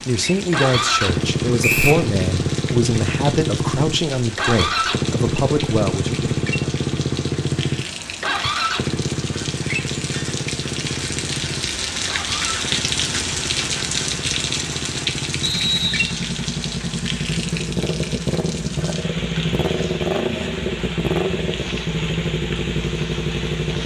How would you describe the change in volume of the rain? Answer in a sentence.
The volume of the rain goes up, then down.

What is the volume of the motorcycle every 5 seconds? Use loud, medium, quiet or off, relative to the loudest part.
loud, loud, medium, loud, loud.